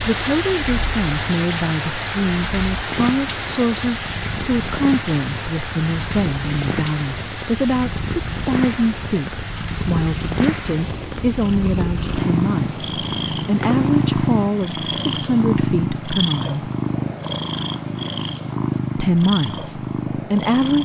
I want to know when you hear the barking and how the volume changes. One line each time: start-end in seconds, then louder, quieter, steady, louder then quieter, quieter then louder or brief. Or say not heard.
not heard.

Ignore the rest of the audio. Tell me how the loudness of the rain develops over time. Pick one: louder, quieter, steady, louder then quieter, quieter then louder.
quieter.